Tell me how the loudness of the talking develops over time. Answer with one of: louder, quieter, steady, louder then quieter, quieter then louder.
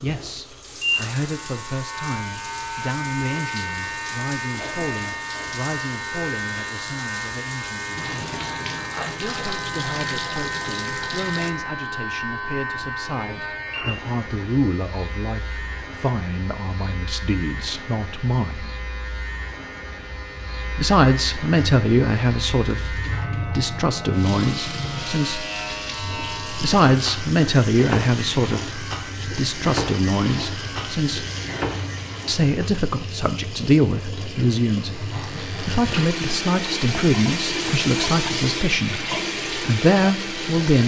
louder.